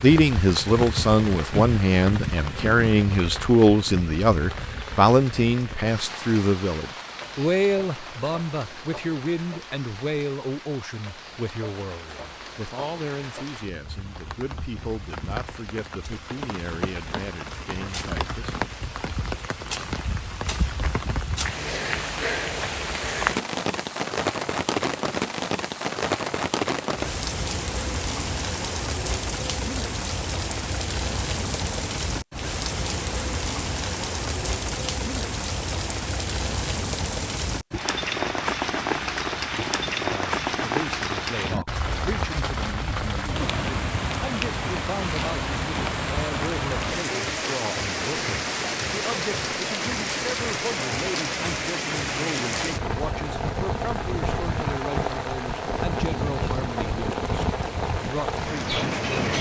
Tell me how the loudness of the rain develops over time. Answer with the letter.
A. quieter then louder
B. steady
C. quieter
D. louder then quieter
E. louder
E.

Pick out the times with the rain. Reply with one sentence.
The rain can be heard from 0.0 to 59.3 s.